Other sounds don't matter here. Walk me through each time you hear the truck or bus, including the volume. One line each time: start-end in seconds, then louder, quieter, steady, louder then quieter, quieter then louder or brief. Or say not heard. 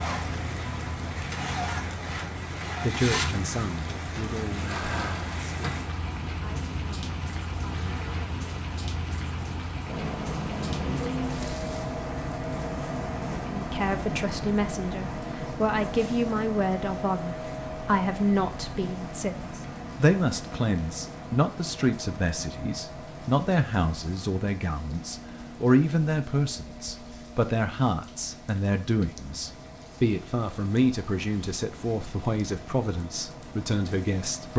0.0-34.5 quieter.